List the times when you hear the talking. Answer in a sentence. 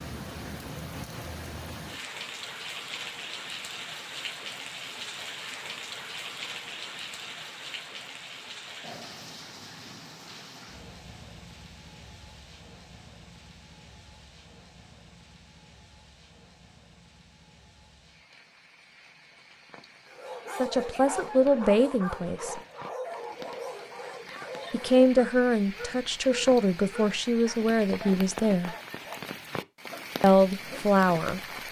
You can hear the talking from 20.6 to 22.6 s, from 24.7 to 28.8 s and from 30.2 to 31.4 s.